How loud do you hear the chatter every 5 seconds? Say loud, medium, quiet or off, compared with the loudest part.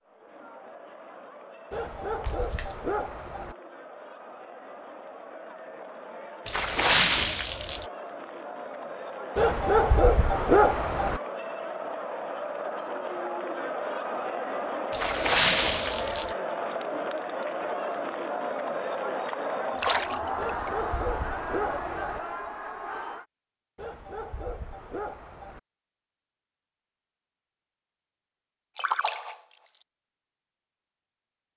quiet, medium, loud, loud, loud, off, off.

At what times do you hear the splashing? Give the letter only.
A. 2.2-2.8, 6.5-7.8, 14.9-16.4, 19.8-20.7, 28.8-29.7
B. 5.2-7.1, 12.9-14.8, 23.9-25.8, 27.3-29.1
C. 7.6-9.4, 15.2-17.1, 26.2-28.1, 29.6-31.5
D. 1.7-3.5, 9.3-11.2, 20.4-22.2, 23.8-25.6
A.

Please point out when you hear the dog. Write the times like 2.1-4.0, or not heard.
1.7-3.5, 9.3-11.2, 20.4-22.2, 23.8-25.6.